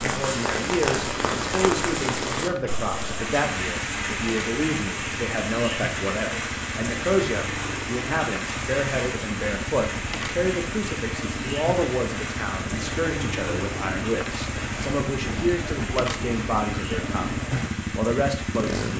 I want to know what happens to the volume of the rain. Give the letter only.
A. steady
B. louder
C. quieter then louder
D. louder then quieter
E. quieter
E.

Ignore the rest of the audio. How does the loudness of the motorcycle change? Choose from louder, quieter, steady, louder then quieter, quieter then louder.
louder.